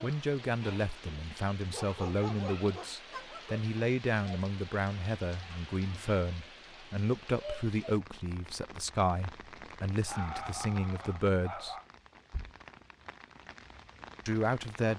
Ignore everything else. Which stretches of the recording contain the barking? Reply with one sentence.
The barking can be heard from 1.7 to 3.6 s and from 10.1 to 11.8 s.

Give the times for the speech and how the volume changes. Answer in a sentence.
The speech can be heard from 0.0 to 11.8 s, at a steady volume; and briefly from 14.2 to 14.9 s.